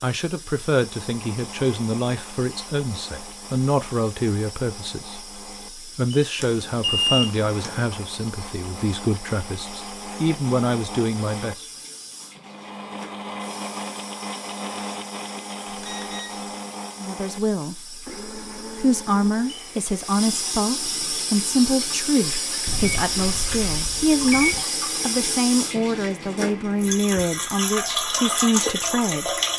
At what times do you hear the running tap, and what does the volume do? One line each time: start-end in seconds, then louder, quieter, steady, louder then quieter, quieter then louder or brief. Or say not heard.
0.0-29.5 louder.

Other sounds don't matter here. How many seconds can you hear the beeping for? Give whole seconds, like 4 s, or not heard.
4 s.